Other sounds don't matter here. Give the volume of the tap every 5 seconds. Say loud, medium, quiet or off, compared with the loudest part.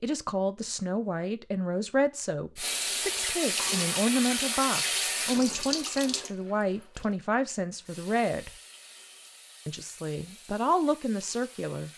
loud, medium, quiet.